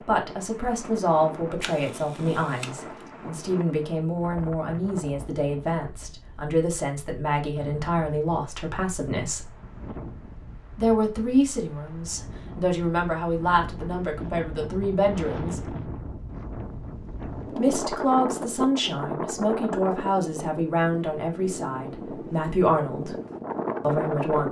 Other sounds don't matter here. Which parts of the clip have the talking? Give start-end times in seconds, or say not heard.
0.0-9.5, 10.8-15.8, 17.5-23.1, 23.8-24.4.